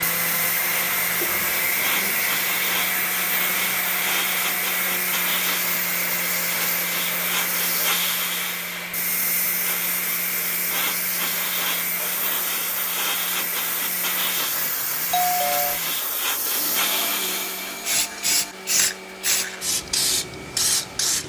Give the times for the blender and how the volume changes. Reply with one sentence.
The blender can be heard from 0.0 to 21.2 s, getting quieter.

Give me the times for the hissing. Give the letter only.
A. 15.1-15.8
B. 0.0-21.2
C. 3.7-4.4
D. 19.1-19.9
B.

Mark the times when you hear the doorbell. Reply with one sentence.
You can hear the doorbell from 15.1 to 15.8 s.